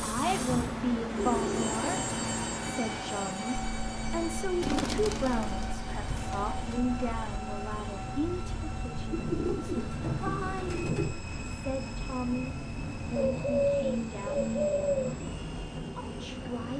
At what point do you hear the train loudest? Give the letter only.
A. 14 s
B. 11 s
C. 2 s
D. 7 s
C.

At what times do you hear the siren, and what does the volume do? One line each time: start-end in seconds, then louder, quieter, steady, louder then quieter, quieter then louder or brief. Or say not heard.
not heard.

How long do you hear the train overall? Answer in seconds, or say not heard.
17 s.